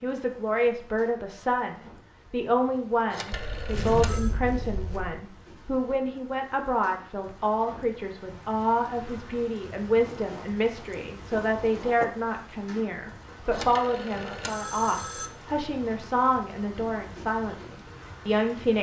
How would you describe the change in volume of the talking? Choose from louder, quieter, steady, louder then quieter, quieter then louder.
steady.